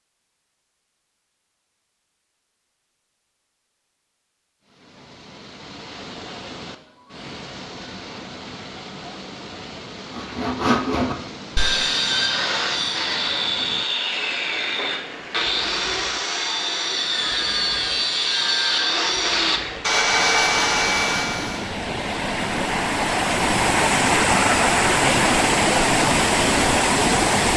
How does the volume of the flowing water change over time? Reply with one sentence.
The loudness of the flowing water goes up.